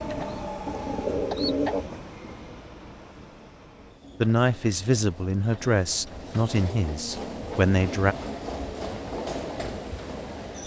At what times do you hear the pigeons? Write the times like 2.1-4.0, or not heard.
0.0-1.9.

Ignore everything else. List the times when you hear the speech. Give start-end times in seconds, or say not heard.
4.2-8.2.